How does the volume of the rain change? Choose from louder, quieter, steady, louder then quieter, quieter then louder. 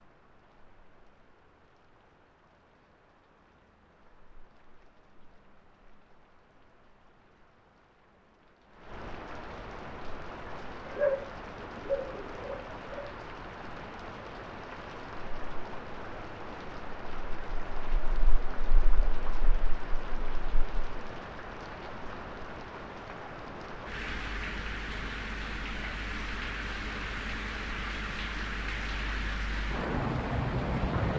louder.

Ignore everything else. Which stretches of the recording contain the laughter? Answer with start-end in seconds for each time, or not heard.
not heard.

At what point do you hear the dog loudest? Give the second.
11 s.